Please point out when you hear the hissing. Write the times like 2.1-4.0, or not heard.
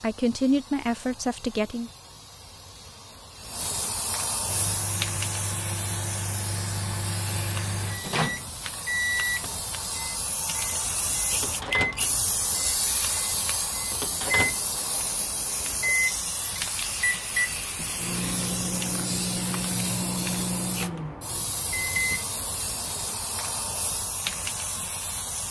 0.0-25.4.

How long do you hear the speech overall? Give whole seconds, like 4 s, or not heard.
2 s.